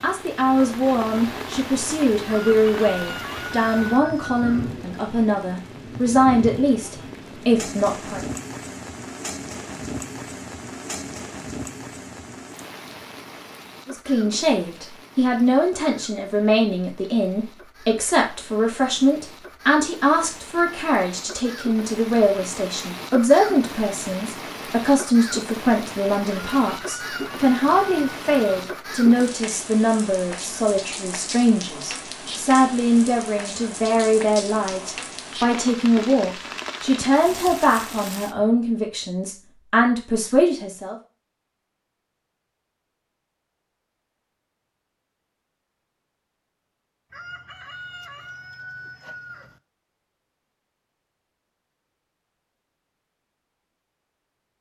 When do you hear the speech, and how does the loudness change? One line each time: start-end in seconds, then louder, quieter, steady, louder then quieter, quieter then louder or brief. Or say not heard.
0.0-8.4 steady
13.8-41.0 steady.